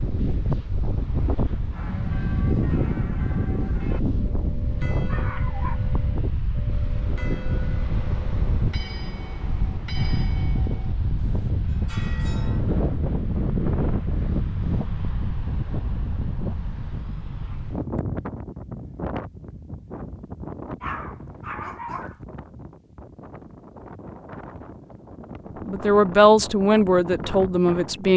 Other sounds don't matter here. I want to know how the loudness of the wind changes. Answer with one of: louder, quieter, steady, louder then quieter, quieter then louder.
quieter.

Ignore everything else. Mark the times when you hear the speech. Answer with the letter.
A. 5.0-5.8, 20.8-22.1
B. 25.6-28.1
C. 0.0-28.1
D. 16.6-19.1
B.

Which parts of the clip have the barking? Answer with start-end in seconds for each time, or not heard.
5.0-5.8, 20.8-22.1.